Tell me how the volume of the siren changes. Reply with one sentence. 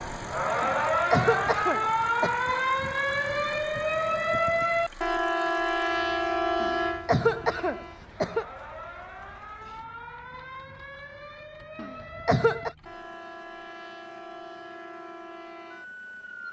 The loudness of the siren goes down.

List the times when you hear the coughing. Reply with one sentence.
The coughing can be heard from 0.6 to 2.4 s, from 6.6 to 8.4 s and from 11.8 to 12.7 s.